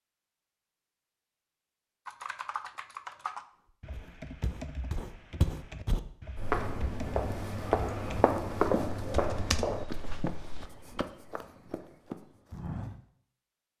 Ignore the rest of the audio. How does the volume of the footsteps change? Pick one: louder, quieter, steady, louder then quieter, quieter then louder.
louder then quieter.